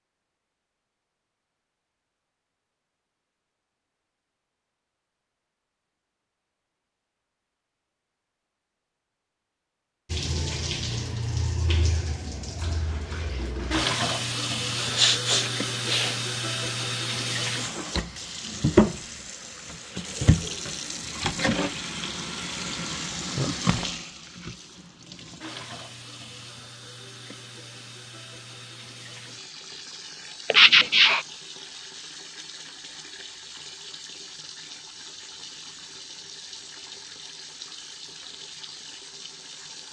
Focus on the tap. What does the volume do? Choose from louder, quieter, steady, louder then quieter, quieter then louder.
quieter.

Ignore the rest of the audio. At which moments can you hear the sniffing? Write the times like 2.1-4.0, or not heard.
14.8-16.1, 30.5-31.2.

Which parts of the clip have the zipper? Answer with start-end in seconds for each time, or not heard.
not heard.